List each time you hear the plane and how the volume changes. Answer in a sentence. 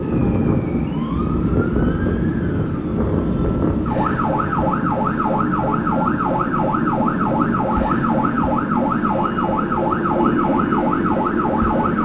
You can hear the plane from 0.0 to 11.9 s, at a steady volume.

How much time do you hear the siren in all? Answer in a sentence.
You can hear the siren for 12 seconds altogether.